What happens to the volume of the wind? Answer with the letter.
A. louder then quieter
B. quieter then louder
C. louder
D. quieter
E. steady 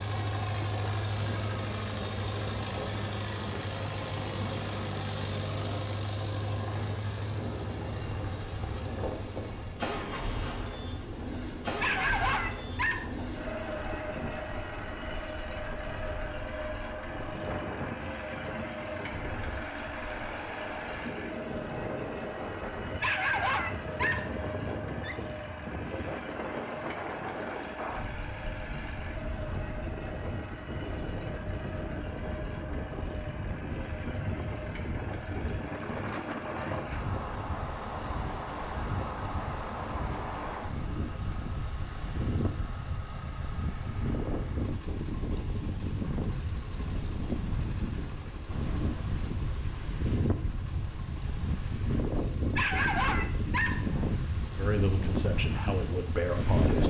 C.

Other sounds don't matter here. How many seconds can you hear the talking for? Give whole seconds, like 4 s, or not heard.
2 s.